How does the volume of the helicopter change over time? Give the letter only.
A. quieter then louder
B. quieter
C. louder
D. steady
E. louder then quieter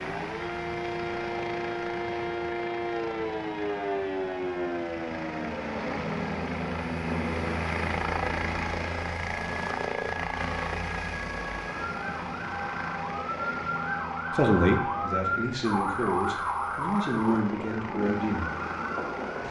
E.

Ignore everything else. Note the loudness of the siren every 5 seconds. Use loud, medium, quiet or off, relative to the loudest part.
loud, medium, loud, loud.